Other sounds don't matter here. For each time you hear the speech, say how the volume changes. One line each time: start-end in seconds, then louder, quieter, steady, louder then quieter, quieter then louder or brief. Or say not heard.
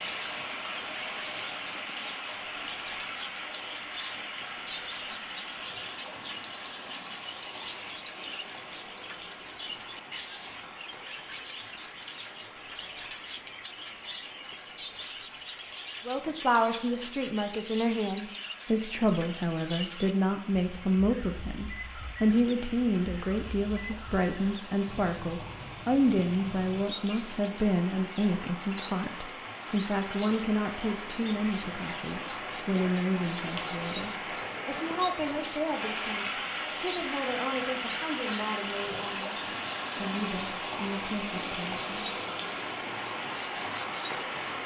16.1-41.9 quieter.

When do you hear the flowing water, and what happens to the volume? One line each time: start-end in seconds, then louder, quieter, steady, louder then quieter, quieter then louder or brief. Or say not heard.
0.0-44.6 quieter then louder.